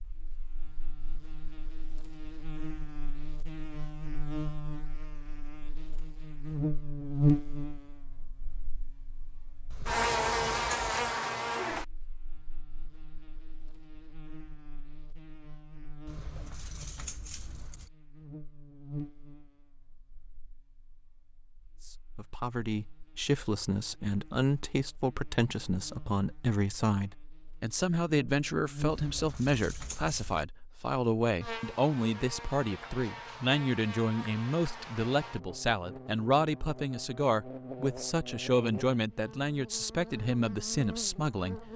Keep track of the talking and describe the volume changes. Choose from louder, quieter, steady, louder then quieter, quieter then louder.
steady.